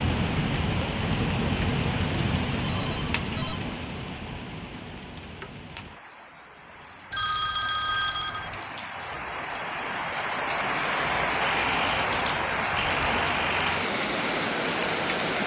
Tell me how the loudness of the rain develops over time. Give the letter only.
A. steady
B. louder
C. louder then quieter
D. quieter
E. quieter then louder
E.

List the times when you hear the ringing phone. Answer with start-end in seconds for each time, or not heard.
2.6-3.6, 7.1-8.6, 11.4-13.8.